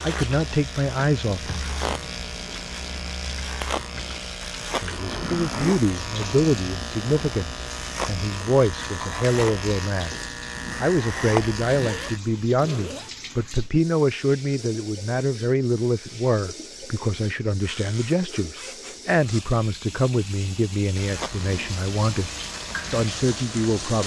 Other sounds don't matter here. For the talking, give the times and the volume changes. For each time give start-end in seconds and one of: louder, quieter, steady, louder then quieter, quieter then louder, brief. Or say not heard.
0.0-1.6 brief
4.6-22.3 steady
22.9-24.0 brief.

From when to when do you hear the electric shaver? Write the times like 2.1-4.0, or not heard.
0.0-12.2, 20.9-23.9.